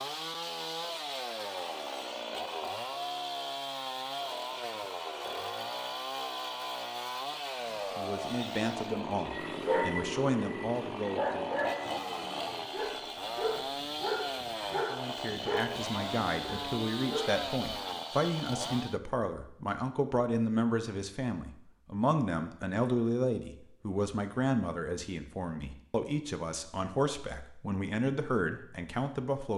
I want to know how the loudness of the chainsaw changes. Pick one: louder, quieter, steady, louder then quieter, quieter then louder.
steady.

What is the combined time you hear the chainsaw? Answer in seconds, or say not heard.
19 s.